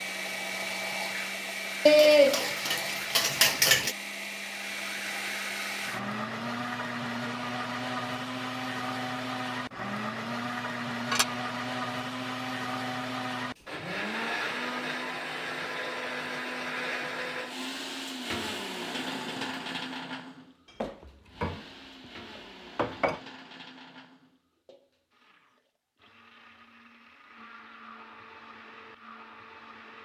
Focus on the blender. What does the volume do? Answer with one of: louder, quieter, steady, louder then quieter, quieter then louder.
quieter.